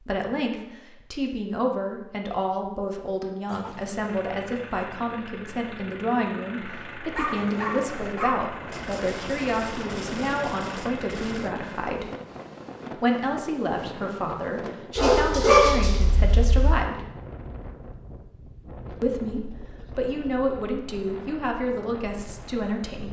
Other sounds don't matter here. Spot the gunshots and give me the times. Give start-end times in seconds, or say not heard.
8.7-11.6.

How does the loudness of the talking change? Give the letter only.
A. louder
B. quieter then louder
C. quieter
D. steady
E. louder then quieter
D.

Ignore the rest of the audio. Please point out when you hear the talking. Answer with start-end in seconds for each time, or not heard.
0.0-12.1, 12.9-17.1, 19.0-23.0.